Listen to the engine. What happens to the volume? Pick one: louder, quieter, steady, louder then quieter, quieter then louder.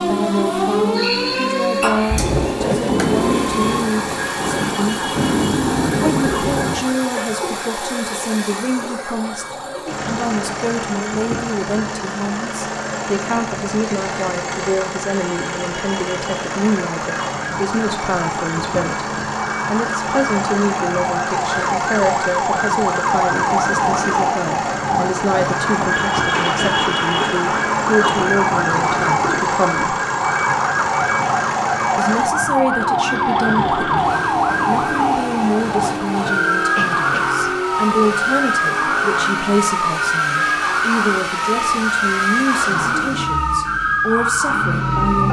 steady.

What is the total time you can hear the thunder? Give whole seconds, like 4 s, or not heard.
8 s.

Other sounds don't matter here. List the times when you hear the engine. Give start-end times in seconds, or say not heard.
0.0-45.2.